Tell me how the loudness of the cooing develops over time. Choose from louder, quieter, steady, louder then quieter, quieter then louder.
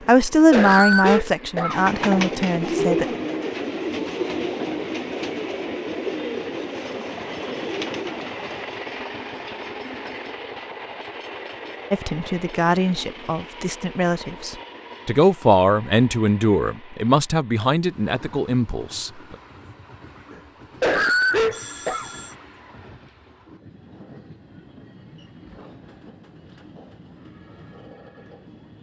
quieter.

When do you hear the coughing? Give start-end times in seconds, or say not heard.
0.0-2.2, 20.3-22.1.